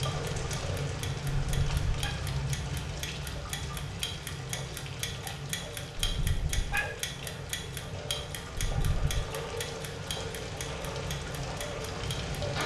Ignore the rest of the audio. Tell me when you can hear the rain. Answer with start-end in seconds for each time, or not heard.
0.0-12.6.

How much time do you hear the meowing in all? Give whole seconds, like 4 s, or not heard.
2 s.